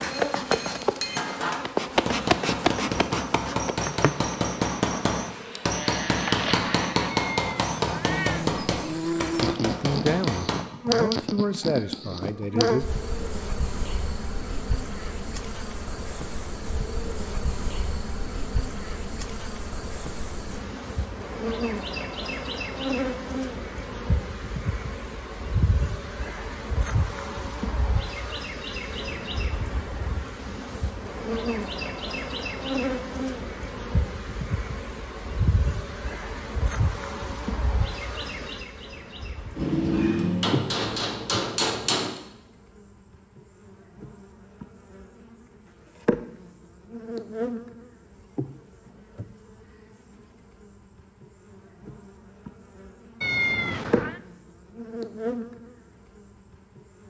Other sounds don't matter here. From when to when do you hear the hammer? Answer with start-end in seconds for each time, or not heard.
0.0-10.7, 39.5-42.1.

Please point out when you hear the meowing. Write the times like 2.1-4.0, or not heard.
7.1-8.4, 53.2-54.2.